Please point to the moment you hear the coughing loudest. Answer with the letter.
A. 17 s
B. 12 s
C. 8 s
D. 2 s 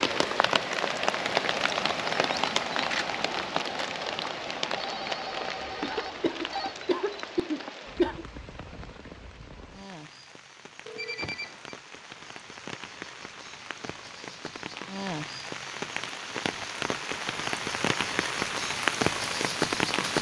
C.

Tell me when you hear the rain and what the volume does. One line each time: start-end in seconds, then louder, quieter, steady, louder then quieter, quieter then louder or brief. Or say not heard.
0.0-20.1 quieter then louder.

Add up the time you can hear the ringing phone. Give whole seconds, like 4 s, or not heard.
3 s.